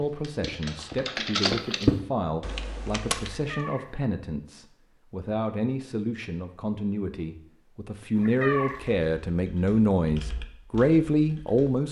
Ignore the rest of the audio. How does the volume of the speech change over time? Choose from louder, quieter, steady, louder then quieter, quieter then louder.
louder.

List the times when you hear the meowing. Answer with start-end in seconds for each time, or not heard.
3.4-3.9, 8.2-8.8.